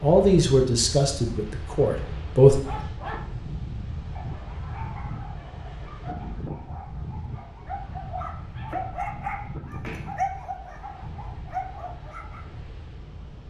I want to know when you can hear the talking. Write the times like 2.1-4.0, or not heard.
0.0-2.6.